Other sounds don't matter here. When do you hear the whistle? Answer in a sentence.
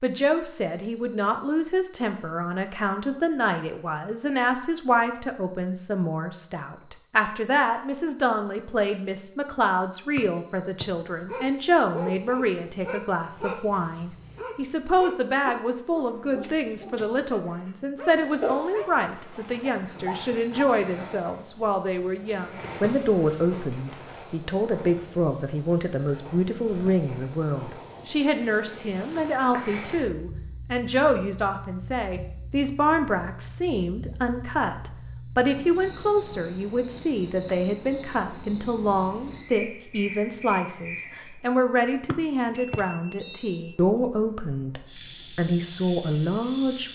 The whistle can be heard from 10.2 to 10.8 s and from 42.1 to 43.6 s.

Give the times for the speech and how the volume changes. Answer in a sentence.
The speech can be heard from 0.0 to 46.8 s, at a steady volume.